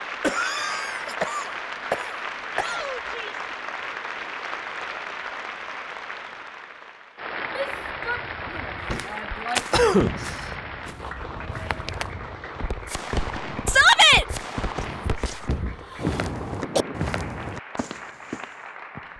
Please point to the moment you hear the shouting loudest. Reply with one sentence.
The volume of the shouting peaks at 14 seconds.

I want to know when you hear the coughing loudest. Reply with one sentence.
The volume of the coughing peaks at 10 seconds.